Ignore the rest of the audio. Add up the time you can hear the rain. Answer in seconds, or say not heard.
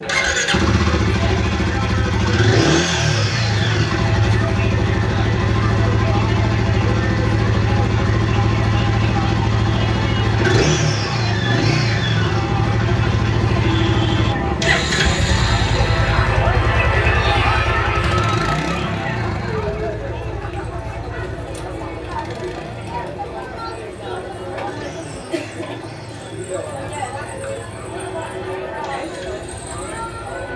not heard.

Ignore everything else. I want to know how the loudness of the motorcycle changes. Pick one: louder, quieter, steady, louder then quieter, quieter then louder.
quieter.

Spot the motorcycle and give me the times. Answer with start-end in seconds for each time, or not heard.
0.0-30.5.